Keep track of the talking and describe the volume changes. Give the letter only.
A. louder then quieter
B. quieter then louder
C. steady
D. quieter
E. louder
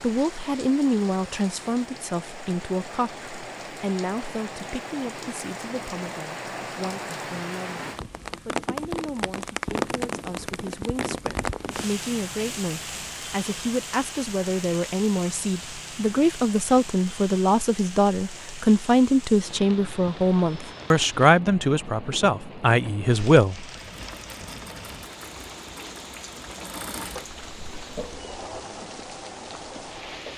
B.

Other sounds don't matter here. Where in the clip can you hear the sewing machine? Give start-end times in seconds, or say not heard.
23.9-30.3.